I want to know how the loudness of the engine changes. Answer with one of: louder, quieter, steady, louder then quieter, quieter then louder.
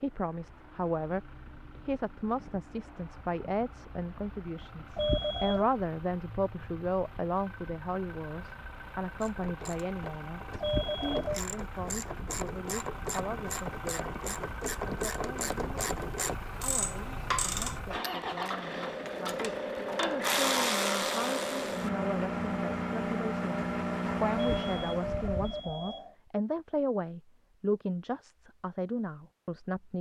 louder.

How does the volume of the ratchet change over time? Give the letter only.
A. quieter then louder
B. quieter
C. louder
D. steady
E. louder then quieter
C.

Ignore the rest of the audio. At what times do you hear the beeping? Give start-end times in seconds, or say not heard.
5.0-5.7, 10.6-11.4, 24.4-26.1.